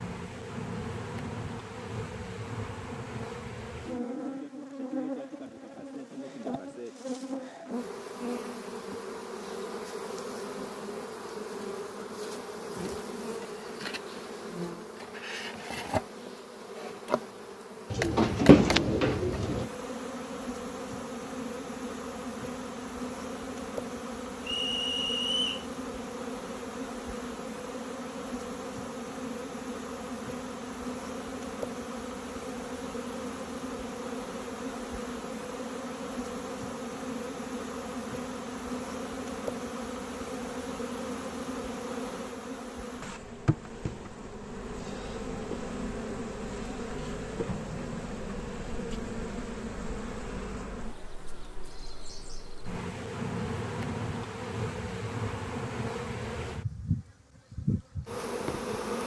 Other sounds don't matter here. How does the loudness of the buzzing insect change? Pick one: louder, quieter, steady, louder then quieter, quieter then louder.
steady.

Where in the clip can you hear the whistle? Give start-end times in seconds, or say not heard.
24.4-25.6.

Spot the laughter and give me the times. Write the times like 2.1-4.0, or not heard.
not heard.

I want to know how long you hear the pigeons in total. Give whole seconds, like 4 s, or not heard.
2 s.